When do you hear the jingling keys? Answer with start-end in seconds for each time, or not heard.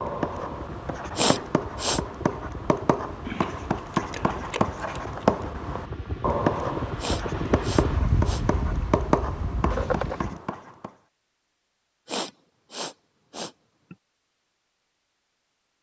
3.2-5.2, 9.7-10.3.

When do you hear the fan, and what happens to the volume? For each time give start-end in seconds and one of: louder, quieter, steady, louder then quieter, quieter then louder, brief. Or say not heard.
0.0-10.4 louder.